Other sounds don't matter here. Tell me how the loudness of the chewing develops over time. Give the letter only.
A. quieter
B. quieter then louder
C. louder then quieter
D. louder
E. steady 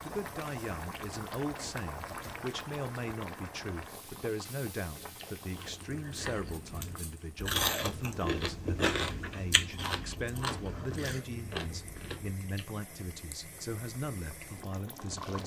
C.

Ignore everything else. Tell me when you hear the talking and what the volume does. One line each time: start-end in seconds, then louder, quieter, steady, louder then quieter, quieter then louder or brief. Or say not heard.
0.0-15.4 steady.